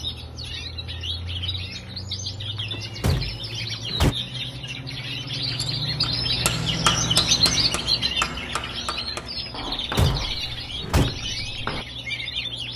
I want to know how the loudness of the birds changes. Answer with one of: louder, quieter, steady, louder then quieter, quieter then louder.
louder then quieter.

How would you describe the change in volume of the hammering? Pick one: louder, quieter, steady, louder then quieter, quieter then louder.
quieter.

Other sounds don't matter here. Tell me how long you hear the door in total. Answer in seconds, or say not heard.
3 s.